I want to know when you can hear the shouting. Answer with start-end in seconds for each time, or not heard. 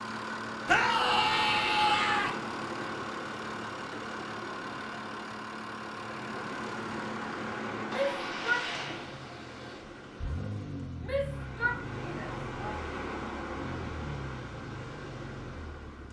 0.7-2.3, 7.8-8.9, 11.0-12.8.